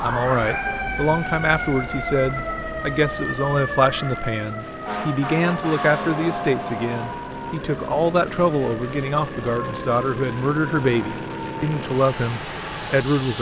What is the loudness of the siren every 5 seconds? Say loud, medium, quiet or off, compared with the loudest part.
loud, loud, medium.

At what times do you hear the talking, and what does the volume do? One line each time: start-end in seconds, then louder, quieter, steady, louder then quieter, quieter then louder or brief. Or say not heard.
0.0-13.3 steady.